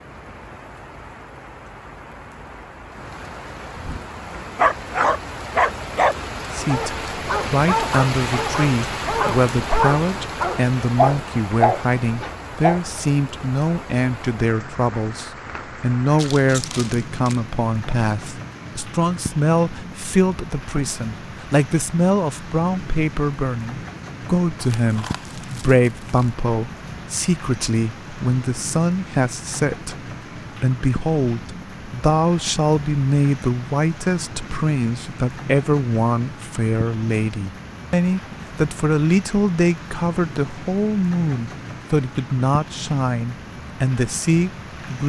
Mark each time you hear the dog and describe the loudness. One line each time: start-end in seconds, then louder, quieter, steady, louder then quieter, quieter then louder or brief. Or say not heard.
3.8-12.8 quieter then louder.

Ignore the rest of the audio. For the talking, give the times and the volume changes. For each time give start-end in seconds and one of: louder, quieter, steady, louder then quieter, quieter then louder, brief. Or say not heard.
6.5-29.9 steady
30.6-45.0 steady.